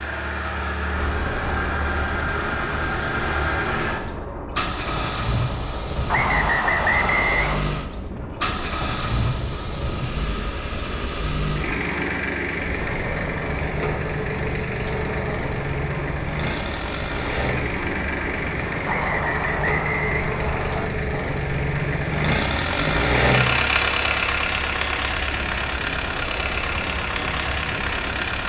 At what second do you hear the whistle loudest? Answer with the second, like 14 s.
7 s.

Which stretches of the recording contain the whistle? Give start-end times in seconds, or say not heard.
6.1-7.6, 18.9-20.9.